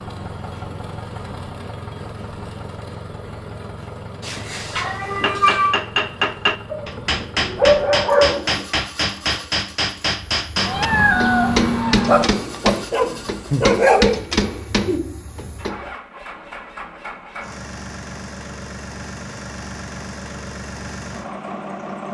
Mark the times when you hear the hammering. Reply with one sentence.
The hammering can be heard from 5.2 to 15.9 s.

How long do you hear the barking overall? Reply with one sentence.
The barking can be heard for 4 seconds in total.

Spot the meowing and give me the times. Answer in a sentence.
The meowing can be heard from 4.2 to 5.8 s, from 10.6 to 12.3 s and from 14.8 to 15.5 s.